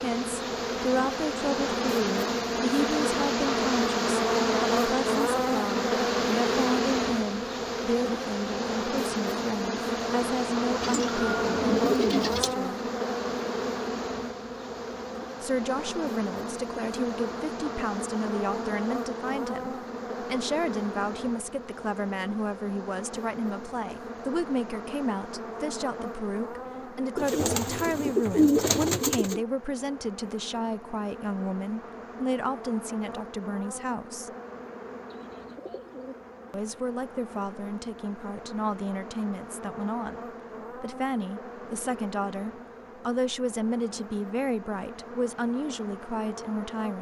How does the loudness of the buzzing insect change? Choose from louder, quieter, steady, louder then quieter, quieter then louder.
quieter.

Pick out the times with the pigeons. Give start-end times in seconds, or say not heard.
10.8-12.6, 27.1-29.4, 35.1-36.9.